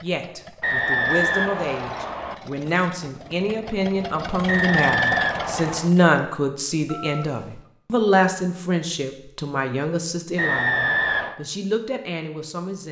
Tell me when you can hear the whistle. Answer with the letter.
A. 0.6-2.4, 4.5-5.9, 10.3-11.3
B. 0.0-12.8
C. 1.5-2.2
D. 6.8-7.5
A.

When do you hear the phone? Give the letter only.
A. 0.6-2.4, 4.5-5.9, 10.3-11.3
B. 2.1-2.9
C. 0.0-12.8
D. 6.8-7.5
D.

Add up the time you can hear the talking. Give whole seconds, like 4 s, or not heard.
13 s.